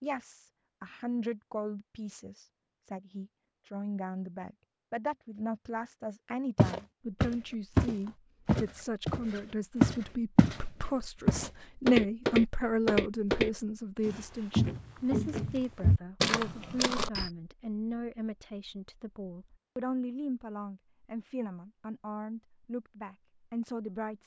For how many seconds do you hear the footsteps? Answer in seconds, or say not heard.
10 s.